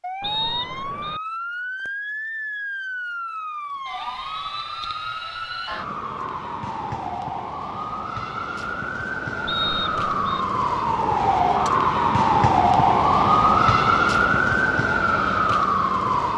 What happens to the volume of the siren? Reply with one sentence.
The volume of the siren goes up.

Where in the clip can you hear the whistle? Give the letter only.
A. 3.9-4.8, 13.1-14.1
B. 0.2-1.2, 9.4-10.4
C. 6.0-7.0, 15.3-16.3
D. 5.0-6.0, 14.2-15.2
B.